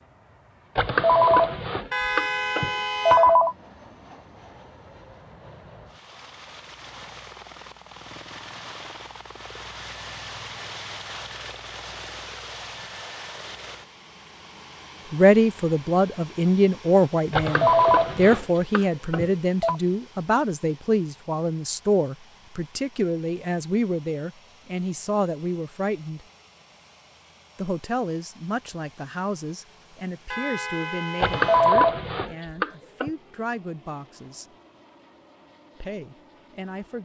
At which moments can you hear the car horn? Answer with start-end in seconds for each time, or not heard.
1.9-3.4, 30.3-31.7.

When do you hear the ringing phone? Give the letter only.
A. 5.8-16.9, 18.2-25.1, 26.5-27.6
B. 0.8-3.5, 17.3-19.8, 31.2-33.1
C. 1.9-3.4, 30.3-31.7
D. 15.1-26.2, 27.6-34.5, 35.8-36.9
B.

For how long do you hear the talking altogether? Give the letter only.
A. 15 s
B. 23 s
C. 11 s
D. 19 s
D.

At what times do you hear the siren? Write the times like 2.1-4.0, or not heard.
not heard.